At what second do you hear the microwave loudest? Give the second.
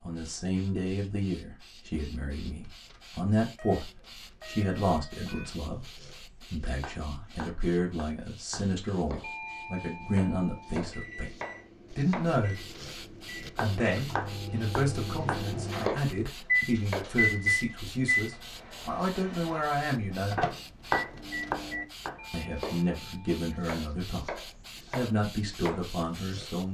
17 s.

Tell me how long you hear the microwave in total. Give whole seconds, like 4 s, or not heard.
13 s.